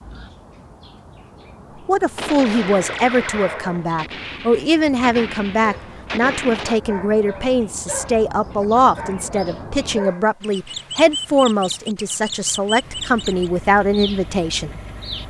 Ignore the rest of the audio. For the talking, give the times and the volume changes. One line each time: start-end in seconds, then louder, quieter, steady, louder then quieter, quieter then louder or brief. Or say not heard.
1.9-15.2 steady.